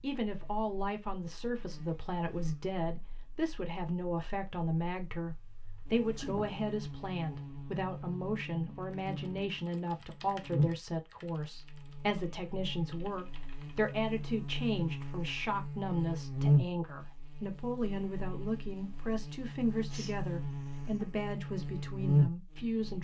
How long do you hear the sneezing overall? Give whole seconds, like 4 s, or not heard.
2 s.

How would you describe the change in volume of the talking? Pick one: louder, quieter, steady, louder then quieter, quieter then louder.
steady.